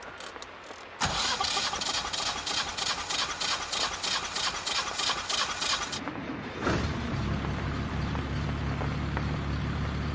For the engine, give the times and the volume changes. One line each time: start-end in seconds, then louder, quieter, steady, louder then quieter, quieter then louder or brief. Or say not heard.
0.0-10.1 steady.